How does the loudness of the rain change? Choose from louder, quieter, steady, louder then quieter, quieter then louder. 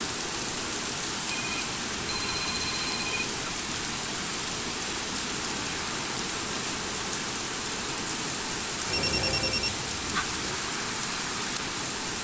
steady.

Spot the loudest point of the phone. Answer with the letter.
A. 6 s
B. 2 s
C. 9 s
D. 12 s
C.